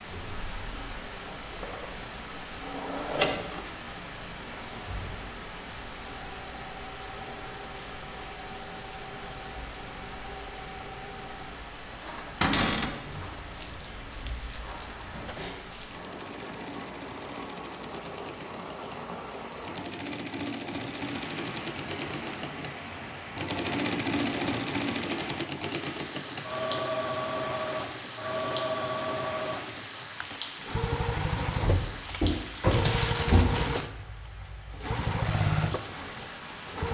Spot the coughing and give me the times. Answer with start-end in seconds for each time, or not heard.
not heard.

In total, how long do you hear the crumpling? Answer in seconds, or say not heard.
4 s.